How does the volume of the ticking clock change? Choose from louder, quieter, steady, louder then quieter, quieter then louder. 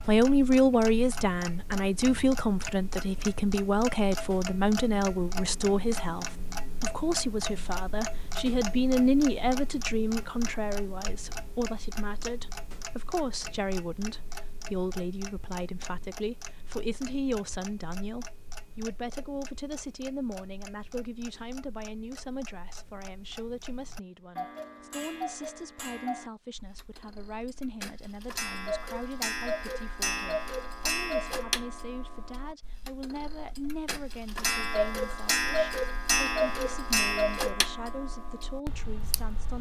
quieter then louder.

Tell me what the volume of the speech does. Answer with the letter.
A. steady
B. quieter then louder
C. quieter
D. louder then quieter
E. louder
C.